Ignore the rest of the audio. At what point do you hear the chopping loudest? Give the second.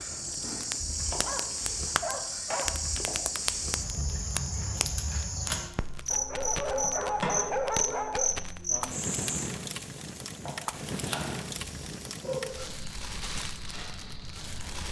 7 s.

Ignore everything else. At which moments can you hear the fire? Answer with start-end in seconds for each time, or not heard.
0.0-14.8.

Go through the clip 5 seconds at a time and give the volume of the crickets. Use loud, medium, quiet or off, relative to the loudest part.
loud, loud, quiet.